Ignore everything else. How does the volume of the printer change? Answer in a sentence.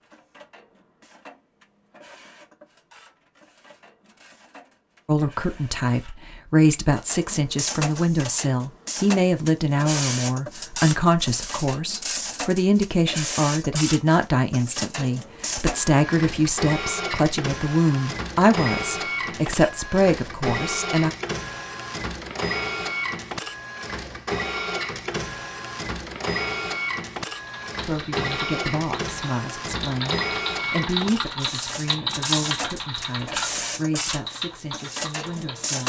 The volume of the printer goes up.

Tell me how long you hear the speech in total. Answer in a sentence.
You can hear the speech for 24 seconds altogether.